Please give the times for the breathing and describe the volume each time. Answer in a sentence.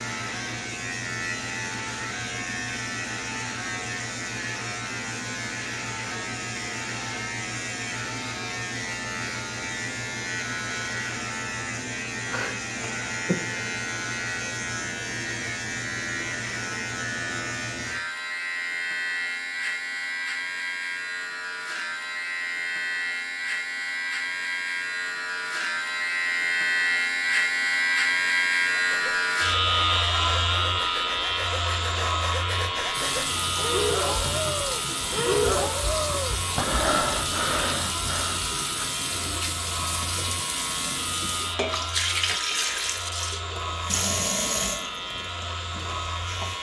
You can hear the breathing from 28.9 to 38.4 s, getting louder.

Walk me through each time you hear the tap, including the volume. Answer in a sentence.
The tap can be heard from 32.9 to 46.5 s, at a steady volume.